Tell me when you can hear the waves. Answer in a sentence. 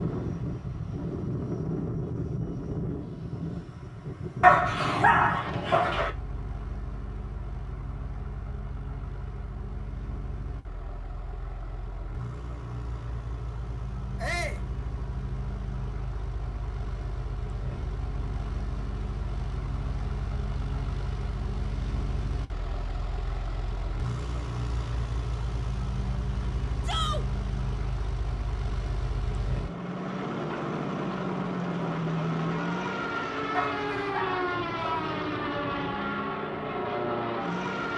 The waves can't be heard in this clip.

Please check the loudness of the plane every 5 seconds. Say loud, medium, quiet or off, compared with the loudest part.
loud, medium, medium, medium, medium, medium, loud, loud.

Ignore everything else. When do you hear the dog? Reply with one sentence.
The dog can be heard from 4.4 to 6.1 s and from 33.5 to 35.2 s.